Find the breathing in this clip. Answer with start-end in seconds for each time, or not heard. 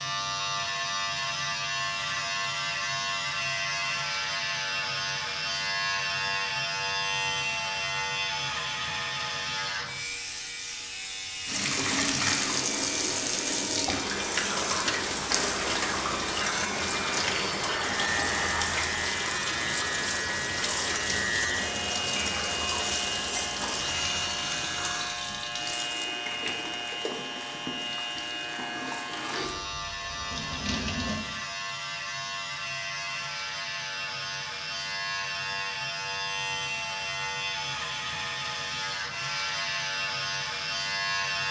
not heard.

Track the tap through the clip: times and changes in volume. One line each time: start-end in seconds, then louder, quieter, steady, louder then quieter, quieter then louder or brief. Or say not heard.
11.4-31.2 quieter.